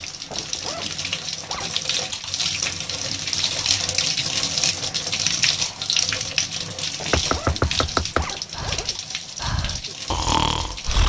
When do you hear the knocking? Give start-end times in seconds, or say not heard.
7.1-8.3.